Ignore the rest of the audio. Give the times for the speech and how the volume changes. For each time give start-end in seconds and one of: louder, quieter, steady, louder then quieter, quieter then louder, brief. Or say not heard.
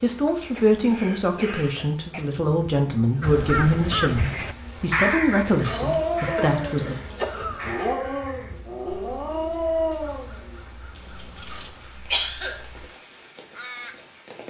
0.0-7.0 steady.